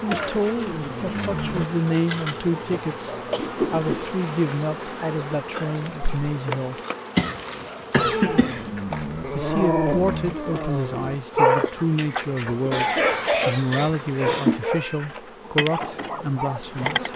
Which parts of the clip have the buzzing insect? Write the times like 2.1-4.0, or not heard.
0.0-17.1.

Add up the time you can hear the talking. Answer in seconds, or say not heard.
14 s.